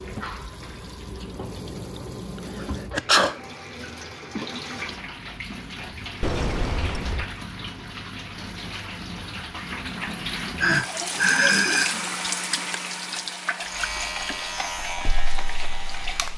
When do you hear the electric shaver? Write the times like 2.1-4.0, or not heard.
13.6-16.3.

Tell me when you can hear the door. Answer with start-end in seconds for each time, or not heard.
6.2-7.2.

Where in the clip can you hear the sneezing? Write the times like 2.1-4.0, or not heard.
2.5-3.4, 10.6-12.1.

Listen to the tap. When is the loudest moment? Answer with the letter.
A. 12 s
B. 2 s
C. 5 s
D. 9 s
A.